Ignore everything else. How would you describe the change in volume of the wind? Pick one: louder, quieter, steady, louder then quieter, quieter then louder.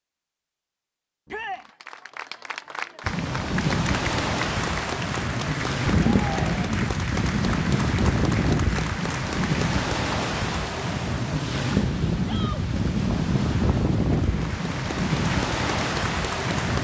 steady.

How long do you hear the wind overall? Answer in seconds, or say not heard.
14 s.